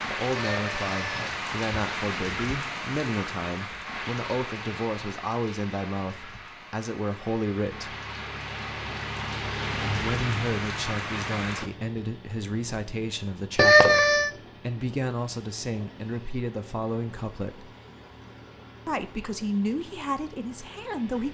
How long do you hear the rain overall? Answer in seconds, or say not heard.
12 s.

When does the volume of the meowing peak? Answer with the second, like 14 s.
14 s.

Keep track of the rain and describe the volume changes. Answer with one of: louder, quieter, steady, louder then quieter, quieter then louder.
quieter then louder.